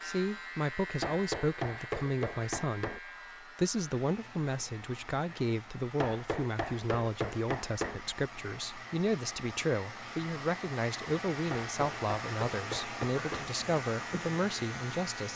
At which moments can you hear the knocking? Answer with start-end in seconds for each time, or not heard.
1.0-3.0, 6.0-8.0, 11.5-13.5.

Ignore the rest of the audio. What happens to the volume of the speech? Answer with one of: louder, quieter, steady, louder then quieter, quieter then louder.
steady.